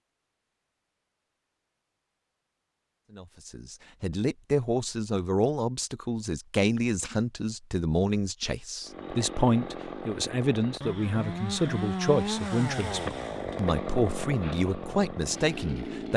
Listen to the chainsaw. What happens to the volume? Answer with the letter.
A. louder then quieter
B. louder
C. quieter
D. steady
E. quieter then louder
A.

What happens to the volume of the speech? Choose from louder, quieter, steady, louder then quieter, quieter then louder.
steady.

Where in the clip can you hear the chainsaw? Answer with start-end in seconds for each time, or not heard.
8.8-16.1.